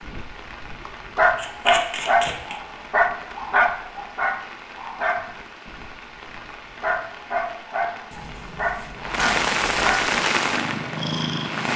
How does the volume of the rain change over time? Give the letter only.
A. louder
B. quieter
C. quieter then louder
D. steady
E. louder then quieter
A.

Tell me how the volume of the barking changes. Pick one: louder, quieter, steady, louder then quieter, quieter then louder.
quieter.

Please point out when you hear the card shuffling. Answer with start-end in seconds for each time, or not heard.
1.4-2.5, 8.1-10.0.